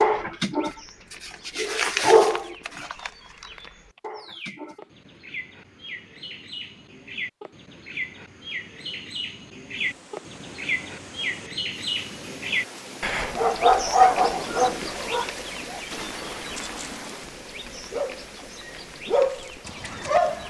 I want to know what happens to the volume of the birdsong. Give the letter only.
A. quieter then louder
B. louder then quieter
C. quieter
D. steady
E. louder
B.